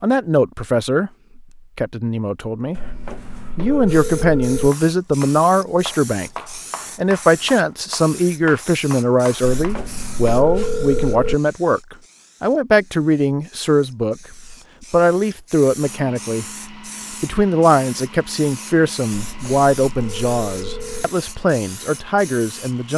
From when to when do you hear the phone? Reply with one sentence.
The phone can be heard from 2.8 to 4.7 s, from 9.4 to 11.3 s and from 19.1 to 21.1 s.